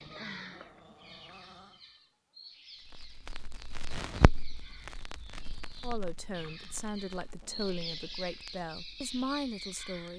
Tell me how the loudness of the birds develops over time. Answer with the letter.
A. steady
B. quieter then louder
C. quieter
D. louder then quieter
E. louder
E.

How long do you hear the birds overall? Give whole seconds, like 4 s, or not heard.
10 s.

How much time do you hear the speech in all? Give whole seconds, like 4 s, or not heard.
4 s.